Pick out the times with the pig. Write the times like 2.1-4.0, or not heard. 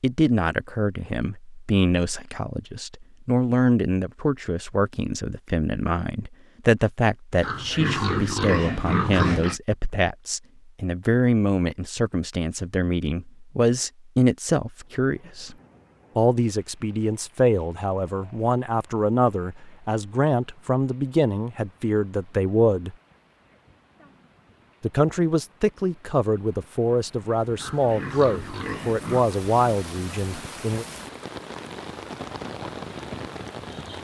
7.4-9.6, 27.6-29.3.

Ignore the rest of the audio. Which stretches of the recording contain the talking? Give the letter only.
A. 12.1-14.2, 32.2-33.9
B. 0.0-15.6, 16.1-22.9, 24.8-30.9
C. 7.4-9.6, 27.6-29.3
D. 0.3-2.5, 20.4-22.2
B.